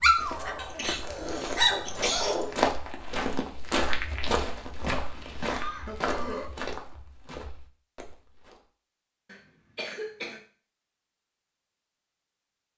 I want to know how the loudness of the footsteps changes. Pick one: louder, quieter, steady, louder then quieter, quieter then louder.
louder then quieter.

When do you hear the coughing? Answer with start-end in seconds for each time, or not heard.
0.6-2.4, 5.1-6.5, 9.2-10.4.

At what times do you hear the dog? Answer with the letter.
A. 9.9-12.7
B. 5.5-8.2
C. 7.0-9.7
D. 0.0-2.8
D.